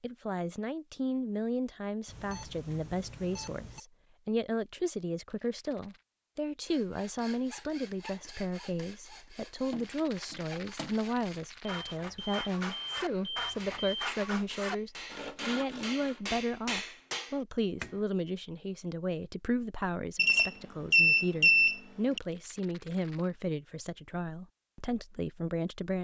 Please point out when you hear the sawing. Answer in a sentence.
You can hear the sawing from 6.7 to 16.2 s.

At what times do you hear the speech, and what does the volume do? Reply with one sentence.
The speech can be heard from 0.0 to 25.9 s, at a steady volume.